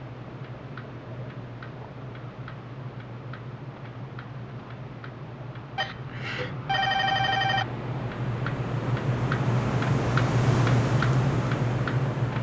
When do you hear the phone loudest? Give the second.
7 s.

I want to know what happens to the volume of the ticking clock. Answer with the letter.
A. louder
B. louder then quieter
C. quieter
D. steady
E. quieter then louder
A.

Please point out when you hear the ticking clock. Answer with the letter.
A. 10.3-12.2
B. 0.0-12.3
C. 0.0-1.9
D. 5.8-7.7
B.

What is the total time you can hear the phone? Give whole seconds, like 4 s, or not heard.
2 s.